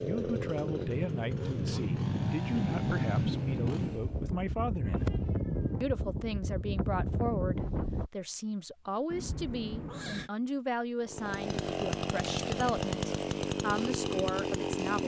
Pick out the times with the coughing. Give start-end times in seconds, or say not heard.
not heard.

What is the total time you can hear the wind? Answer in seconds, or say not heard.
8 s.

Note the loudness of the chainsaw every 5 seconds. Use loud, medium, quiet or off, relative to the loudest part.
medium, off, loud.